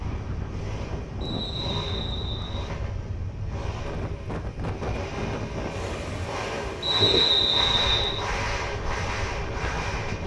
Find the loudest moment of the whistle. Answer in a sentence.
The volume of the whistle peaks at 7 seconds.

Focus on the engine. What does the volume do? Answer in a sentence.
The volume of the engine goes up.